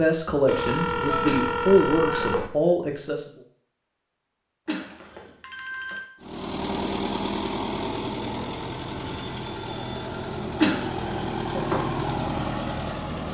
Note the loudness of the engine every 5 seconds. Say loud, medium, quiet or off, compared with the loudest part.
off, loud, loud.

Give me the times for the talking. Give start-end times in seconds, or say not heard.
0.0-3.2.